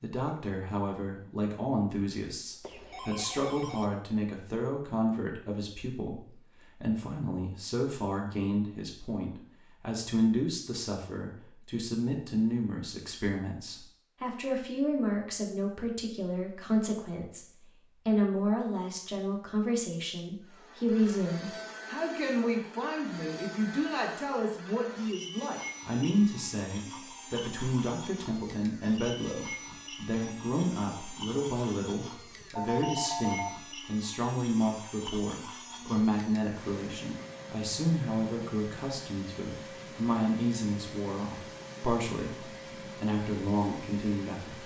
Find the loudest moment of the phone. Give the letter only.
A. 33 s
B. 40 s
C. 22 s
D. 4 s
A.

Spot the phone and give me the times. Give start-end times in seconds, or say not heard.
2.6-3.9, 32.5-33.5.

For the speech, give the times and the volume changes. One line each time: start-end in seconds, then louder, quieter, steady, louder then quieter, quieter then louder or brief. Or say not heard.
0.0-44.6 steady.